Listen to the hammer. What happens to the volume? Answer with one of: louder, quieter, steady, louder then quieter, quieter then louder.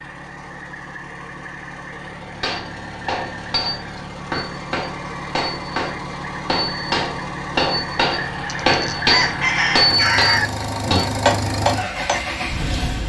louder.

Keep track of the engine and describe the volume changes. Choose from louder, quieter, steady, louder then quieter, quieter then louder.
louder.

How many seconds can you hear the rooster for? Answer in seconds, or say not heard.
2 s.